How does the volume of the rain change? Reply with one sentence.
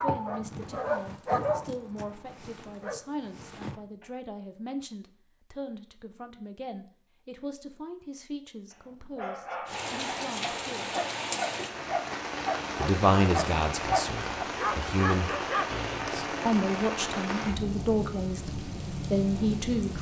The loudness of the rain stays about the same.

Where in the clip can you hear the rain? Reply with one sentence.
The rain can be heard from 9.7 to 19.9 s.